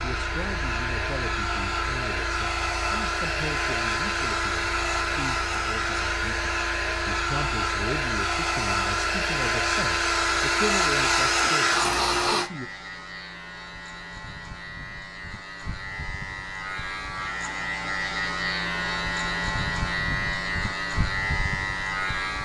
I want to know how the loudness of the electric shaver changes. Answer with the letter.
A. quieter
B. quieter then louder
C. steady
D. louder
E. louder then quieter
D.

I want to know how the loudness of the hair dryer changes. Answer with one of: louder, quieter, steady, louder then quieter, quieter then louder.
louder.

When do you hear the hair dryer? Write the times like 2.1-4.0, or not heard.
0.0-12.5.